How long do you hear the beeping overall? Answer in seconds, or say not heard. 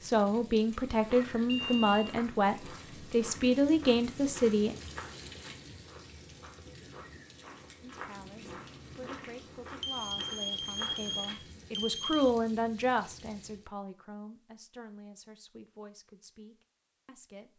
4 s.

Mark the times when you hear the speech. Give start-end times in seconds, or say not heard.
0.0-4.8, 7.8-17.5.